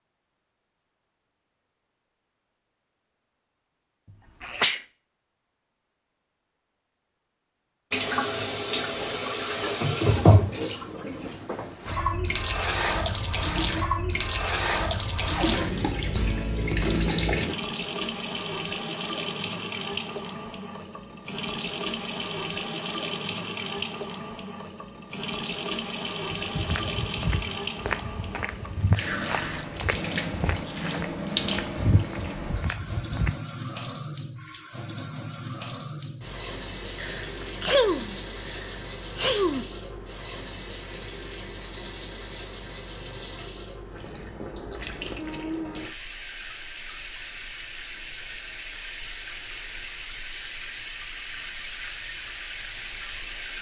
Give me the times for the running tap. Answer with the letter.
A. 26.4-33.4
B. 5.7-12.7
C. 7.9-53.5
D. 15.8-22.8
C.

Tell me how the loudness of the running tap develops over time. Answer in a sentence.
The loudness of the running tap goes down.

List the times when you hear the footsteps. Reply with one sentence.
You can hear the footsteps from 26.4 to 33.4 s.